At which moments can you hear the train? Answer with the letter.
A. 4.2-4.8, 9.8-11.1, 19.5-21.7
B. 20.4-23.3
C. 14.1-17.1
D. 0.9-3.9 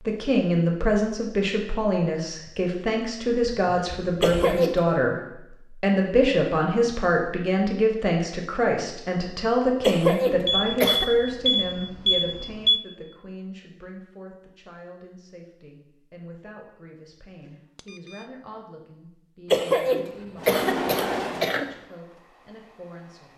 B.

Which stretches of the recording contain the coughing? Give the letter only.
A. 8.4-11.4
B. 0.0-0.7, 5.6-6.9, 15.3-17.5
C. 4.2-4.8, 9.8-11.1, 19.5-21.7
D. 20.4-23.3
C.